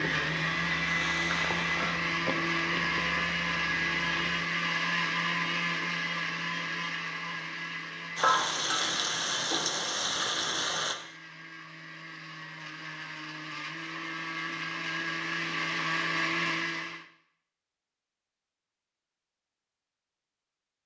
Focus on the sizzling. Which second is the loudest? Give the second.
9 s.